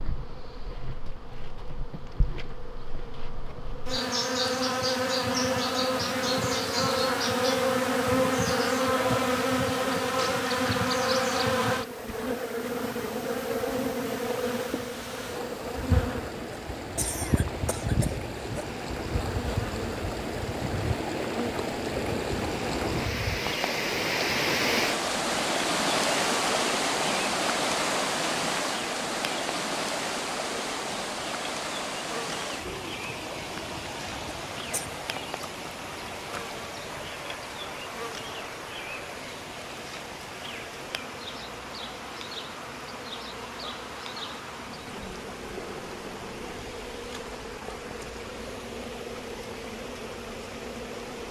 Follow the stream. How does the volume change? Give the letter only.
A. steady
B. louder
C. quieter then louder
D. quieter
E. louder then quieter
E.